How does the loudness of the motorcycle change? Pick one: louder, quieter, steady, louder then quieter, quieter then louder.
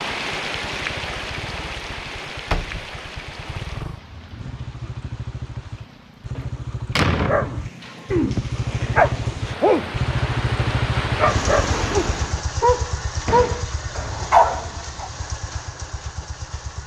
louder then quieter.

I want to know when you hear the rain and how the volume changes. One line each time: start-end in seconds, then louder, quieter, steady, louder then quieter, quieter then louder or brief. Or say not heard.
0.0-12.4 quieter then louder.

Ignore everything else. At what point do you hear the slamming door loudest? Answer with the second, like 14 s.
7 s.